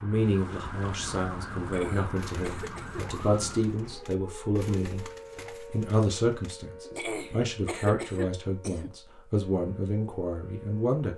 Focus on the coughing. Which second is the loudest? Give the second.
8 s.